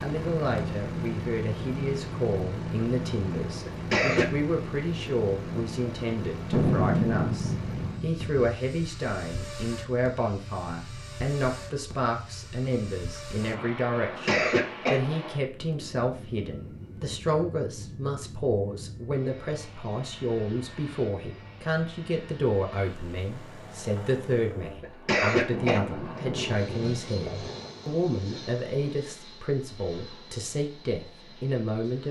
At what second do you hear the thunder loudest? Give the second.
7 s.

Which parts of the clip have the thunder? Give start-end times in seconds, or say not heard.
6.5-8.5, 25.5-29.0.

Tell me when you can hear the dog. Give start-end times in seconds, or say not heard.
not heard.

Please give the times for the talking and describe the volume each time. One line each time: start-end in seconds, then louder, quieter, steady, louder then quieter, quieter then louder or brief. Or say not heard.
0.0-32.0 steady.